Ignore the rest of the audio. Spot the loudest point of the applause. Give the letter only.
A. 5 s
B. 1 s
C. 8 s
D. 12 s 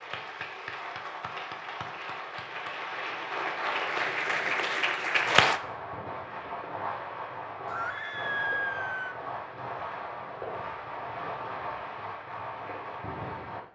A.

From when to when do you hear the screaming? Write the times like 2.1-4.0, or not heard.
7.7-9.2.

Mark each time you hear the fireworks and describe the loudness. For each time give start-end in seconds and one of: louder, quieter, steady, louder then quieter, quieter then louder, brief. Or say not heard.
5.2-13.6 steady.